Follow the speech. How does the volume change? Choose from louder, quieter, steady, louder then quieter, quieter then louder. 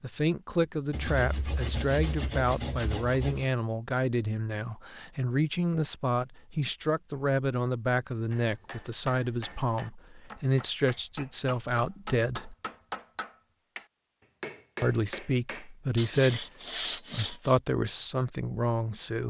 steady.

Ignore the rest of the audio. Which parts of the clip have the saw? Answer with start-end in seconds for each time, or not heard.
0.9-3.5, 15.9-17.6.